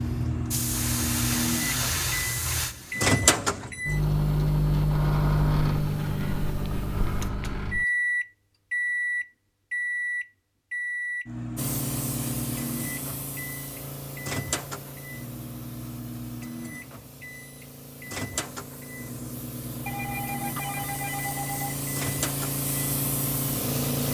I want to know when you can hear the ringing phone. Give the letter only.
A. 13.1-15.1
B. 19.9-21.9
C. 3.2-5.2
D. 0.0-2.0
B.